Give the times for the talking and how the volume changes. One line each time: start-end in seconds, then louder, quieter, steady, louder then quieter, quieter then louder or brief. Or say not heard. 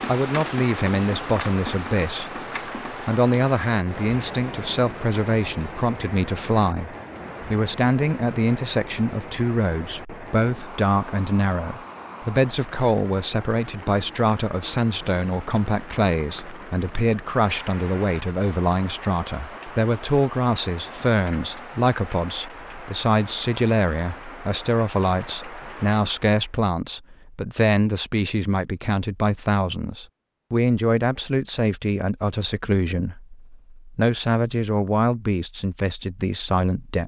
0.1-37.0 steady.